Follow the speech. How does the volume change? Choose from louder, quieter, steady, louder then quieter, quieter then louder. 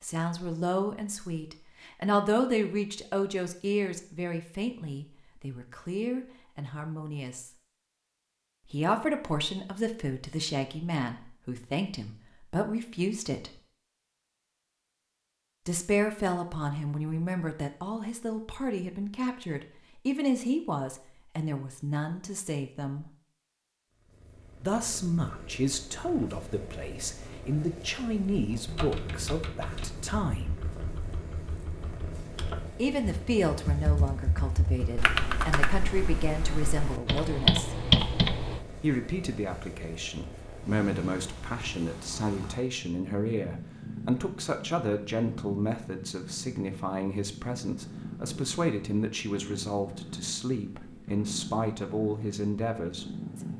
steady.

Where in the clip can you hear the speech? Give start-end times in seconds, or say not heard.
0.0-7.5, 8.7-13.5, 15.7-23.1, 24.6-30.6, 32.8-37.8, 38.8-53.5.